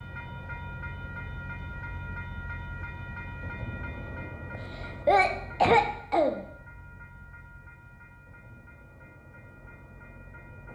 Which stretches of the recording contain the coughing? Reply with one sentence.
You can hear the coughing from 4.5 to 6.4 s.